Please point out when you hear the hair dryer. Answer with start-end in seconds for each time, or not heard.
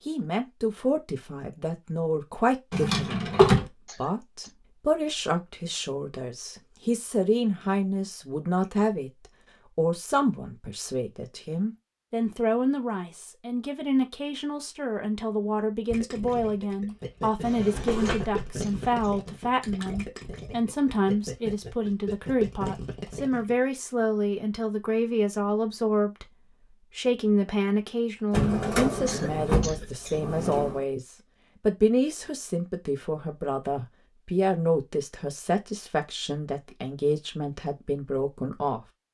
not heard.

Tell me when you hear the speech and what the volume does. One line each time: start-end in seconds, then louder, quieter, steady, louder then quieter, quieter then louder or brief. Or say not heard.
0.1-38.9 steady.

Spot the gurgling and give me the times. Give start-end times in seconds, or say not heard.
15.9-23.6.